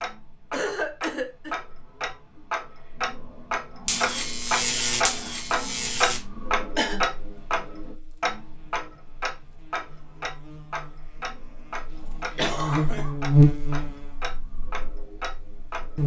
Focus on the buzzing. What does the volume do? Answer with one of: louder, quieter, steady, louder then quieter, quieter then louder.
quieter then louder.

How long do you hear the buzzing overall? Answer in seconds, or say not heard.
12 s.